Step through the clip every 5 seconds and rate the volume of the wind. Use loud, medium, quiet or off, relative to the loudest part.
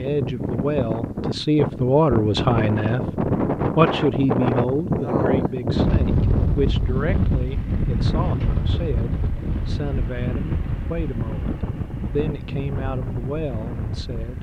loud, loud, medium.